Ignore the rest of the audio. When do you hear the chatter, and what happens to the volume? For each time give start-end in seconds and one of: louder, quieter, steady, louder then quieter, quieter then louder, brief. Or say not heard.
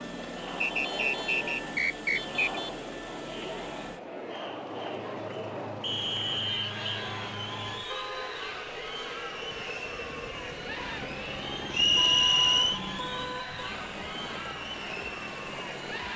0.0-16.1 steady.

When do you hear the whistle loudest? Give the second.
12 s.